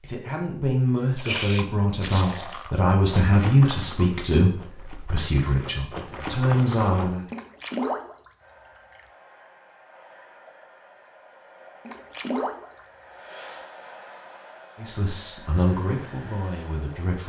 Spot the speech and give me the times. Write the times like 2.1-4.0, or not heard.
0.0-7.2, 14.8-17.2.